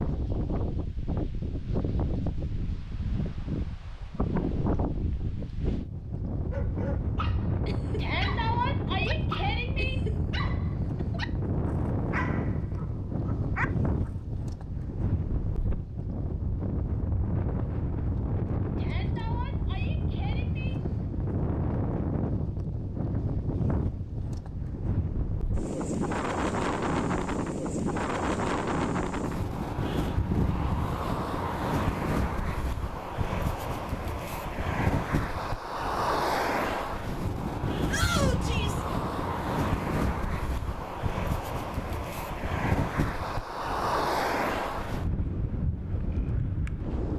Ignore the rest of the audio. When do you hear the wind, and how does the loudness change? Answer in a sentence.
The wind can be heard from 0.0 to 47.1 s, at a steady volume.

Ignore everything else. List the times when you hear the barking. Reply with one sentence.
You can hear the barking from 6.5 to 14.1 s.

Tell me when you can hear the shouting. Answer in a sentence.
The shouting can be heard from 8.0 to 9.9 s, from 18.8 to 20.8 s and from 37.9 to 38.9 s.